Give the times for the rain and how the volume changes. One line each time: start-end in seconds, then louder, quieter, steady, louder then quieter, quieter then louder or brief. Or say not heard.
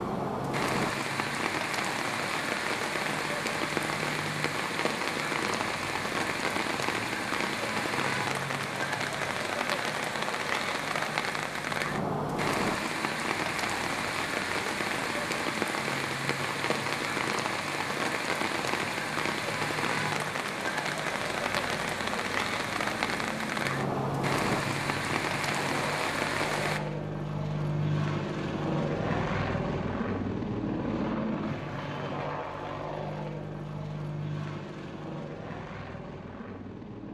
0.0-26.8 steady.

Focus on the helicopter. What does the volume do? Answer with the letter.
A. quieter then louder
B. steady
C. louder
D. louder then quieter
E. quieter
C.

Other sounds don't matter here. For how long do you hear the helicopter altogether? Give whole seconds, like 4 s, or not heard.
37 s.